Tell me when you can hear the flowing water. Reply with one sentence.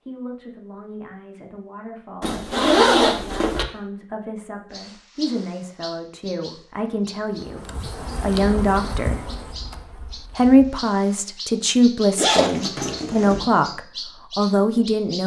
You can't hear the flowing water here.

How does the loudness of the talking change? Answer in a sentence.
The loudness of the talking goes up.